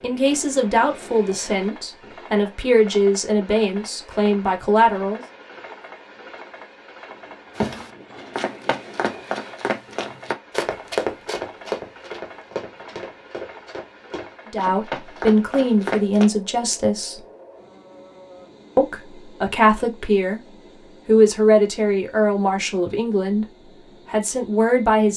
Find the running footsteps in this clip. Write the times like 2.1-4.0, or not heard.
7.5-16.2.